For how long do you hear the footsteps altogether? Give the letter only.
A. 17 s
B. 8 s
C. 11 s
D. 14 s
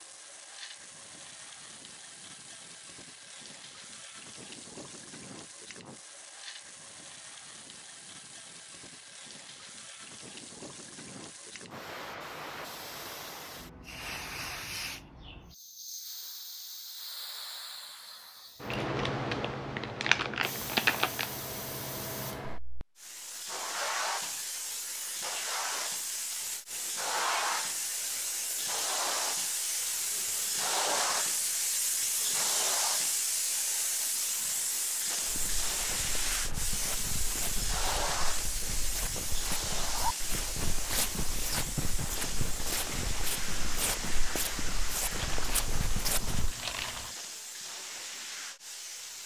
C.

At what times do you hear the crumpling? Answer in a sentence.
The crumpling can be heard from 18.7 to 21.3 s and from 45.1 to 47.1 s.